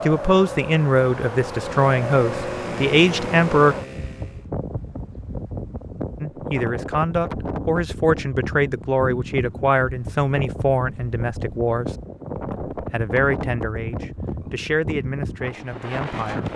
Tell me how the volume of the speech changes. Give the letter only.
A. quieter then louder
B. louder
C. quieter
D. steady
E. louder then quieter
C.